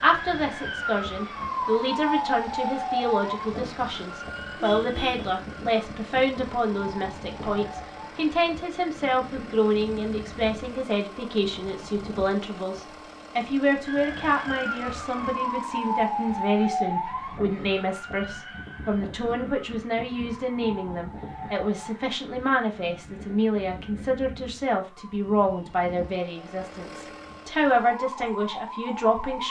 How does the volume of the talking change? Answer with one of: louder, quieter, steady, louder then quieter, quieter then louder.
steady.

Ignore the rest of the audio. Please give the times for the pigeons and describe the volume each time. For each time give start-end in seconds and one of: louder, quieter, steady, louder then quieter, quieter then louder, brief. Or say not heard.
not heard.